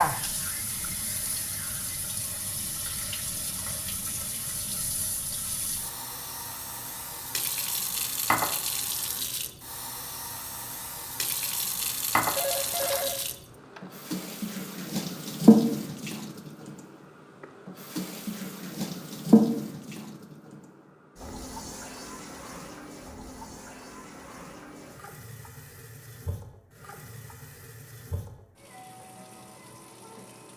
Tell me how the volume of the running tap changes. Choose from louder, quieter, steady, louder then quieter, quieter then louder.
louder then quieter.